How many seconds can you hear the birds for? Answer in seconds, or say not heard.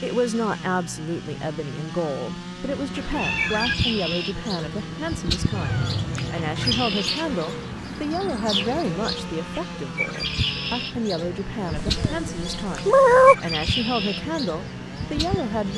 13 s.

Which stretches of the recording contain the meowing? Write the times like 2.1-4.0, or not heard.
2.6-3.8, 5.5-6.8, 11.8-13.3.